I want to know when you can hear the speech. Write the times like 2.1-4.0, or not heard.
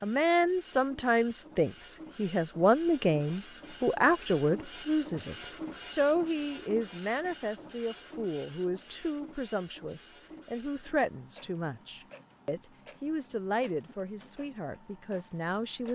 0.0-15.8.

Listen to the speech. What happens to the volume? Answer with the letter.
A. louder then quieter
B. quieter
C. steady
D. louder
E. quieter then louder
B.